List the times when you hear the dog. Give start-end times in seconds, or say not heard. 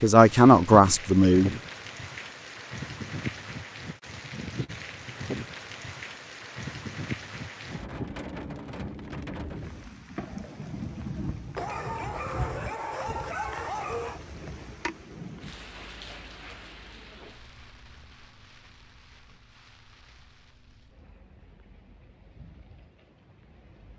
11.6-14.2.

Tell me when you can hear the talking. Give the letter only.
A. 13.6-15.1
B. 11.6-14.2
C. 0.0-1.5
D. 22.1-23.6
C.